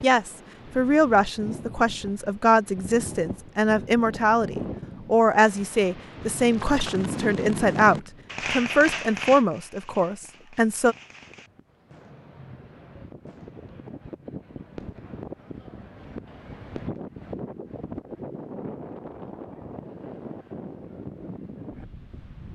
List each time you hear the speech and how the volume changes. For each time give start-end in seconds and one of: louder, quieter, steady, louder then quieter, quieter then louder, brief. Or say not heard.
0.0-10.9 steady.